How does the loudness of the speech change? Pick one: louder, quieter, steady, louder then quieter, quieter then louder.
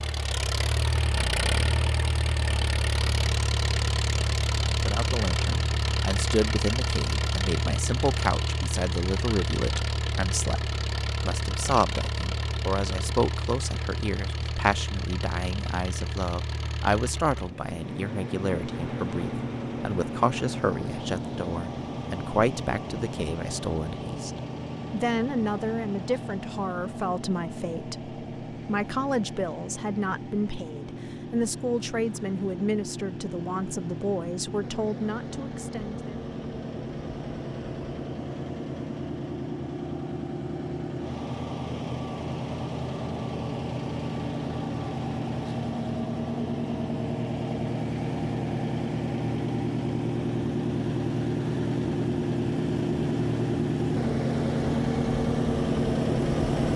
steady.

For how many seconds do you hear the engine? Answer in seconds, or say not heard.
57 s.